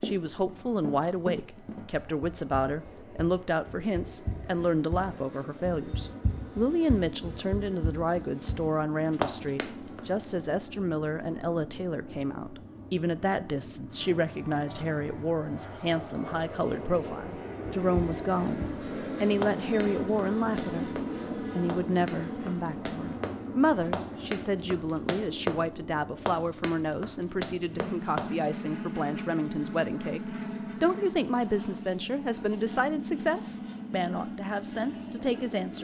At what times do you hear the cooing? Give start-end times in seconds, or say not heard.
not heard.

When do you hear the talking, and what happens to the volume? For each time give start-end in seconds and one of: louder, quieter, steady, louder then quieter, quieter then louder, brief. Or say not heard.
0.0-35.8 steady.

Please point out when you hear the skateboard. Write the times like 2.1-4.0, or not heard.
not heard.